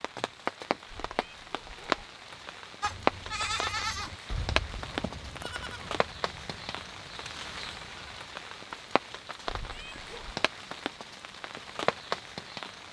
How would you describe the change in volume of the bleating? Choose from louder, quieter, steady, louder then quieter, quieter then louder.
quieter.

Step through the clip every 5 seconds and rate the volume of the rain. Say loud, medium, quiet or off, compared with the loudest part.
loud, medium, loud.